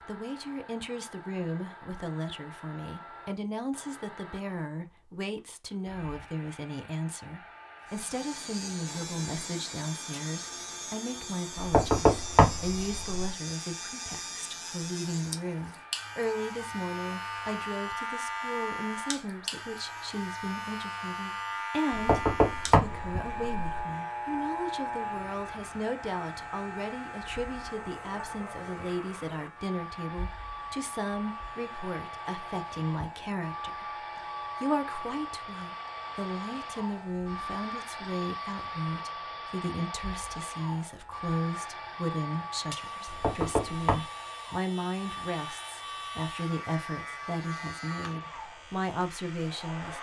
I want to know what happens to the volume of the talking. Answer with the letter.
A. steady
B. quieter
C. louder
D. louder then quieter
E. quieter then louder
A.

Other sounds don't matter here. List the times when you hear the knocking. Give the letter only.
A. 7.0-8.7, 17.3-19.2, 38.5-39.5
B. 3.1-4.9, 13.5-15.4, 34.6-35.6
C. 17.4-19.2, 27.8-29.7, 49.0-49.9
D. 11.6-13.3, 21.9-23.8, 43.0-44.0
D.